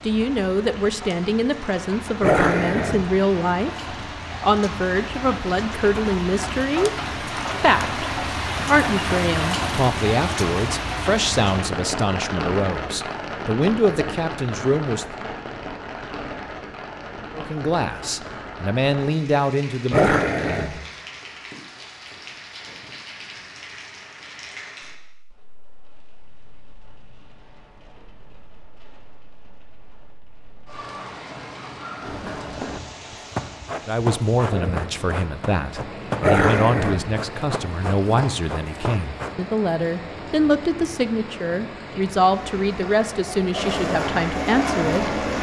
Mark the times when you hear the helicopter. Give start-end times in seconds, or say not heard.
42.3-45.3.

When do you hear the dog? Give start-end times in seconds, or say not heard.
2.2-3.1, 19.9-20.7, 36.2-37.0.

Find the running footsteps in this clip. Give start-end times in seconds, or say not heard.
32.0-39.4.